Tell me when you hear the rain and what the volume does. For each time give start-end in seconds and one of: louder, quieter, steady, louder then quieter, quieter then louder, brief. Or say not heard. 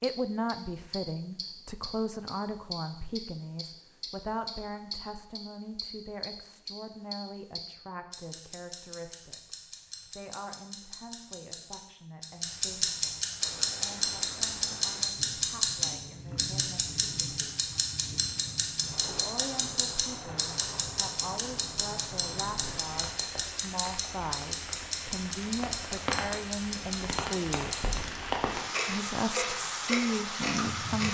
13.4-31.1 louder.